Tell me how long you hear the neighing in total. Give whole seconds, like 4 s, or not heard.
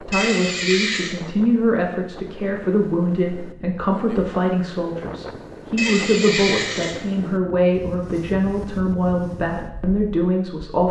2 s.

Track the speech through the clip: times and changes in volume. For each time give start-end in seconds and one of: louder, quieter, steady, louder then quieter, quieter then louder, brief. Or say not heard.
0.0-10.8 steady.